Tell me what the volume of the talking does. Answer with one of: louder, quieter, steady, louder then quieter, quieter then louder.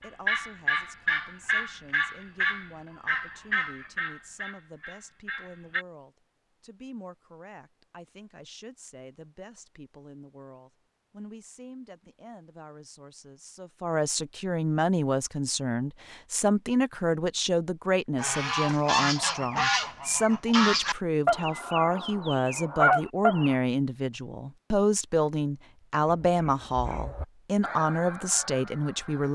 louder.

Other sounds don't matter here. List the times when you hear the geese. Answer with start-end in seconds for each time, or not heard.
0.0-5.8, 18.1-23.6, 26.1-29.3.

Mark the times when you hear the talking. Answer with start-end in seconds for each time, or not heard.
0.0-29.3.